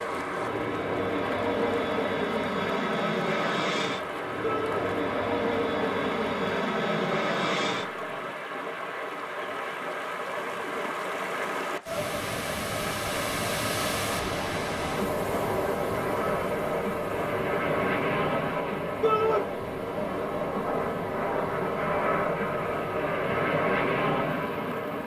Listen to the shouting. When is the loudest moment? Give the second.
19 s.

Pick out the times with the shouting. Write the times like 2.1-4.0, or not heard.
4.4-4.8, 19.0-19.4.